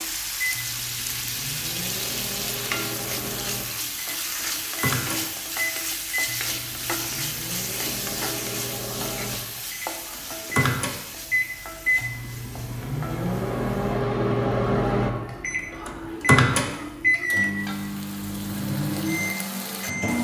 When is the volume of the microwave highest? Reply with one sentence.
The volume of the microwave peaks at 17 seconds.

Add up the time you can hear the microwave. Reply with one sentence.
The microwave can be heard for 20 seconds in total.